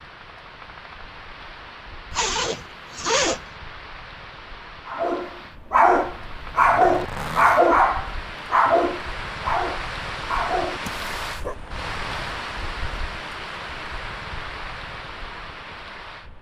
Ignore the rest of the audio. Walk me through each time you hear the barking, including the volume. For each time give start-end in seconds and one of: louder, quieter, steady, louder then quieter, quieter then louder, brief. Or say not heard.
4.8-11.6 quieter.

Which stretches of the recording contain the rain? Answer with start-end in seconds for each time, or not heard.
0.0-16.3.